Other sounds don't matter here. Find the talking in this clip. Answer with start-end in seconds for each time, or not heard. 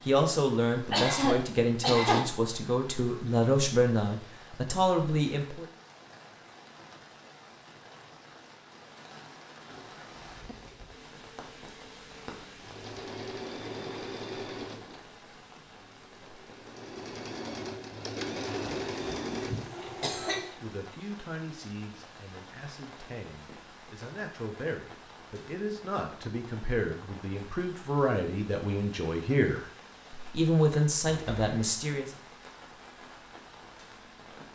0.1-5.7, 20.4-32.1.